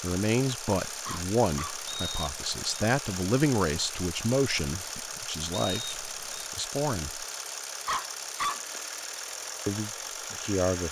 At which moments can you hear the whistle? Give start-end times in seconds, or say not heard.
1.9-2.8, 5.6-6.5.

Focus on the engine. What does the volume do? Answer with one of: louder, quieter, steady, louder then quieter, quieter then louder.
steady.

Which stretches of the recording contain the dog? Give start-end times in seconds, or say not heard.
1.1-1.9, 7.8-8.8.